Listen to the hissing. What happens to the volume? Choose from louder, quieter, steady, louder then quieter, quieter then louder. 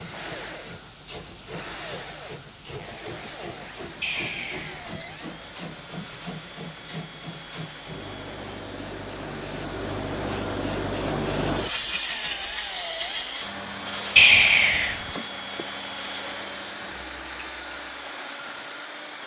louder then quieter.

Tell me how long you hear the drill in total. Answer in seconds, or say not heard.
19 s.